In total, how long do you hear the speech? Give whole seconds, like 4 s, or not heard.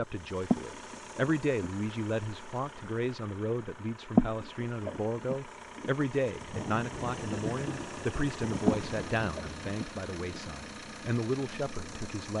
12 s.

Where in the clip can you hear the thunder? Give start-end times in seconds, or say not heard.
6.4-9.8.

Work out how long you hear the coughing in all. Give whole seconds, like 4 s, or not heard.
5 s.